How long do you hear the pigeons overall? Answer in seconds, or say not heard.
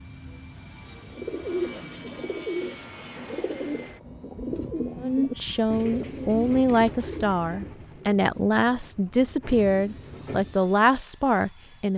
10 s.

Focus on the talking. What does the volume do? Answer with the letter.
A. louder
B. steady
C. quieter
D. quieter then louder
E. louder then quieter
B.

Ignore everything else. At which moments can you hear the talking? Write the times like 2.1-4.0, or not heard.
5.0-11.9.